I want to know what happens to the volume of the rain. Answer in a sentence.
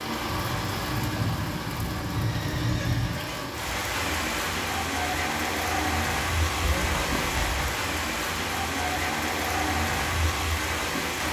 The volume of the rain stays about the same.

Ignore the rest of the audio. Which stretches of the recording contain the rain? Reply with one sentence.
You can hear the rain from 0.0 to 11.2 s.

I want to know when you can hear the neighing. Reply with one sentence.
The neighing can be heard from 2.1 to 3.5 s and from 6.6 to 7.8 s.